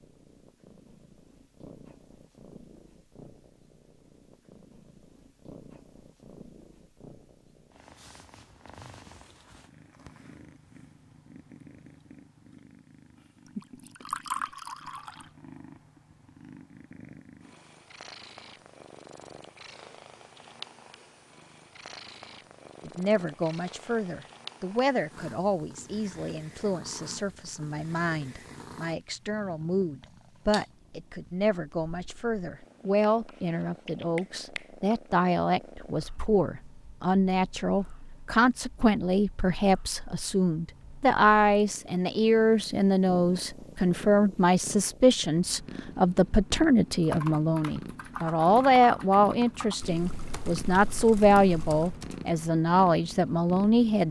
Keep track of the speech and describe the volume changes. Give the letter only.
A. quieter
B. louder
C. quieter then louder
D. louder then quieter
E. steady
B.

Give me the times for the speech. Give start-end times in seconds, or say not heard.
22.9-54.0.